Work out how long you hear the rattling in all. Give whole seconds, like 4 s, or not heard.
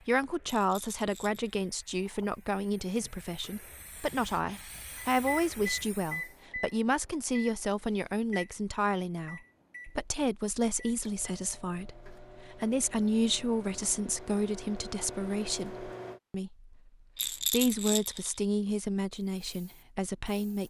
2 s.